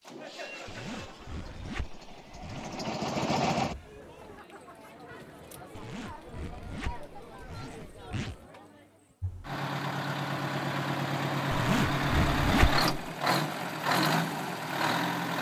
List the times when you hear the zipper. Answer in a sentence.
You can hear the zipper from 0.7 to 2.9 s, from 5.8 to 8.4 s and from 11.5 to 12.8 s.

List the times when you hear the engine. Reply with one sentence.
You can hear the engine from 0.0 to 4.4 s and from 9.2 to 15.3 s.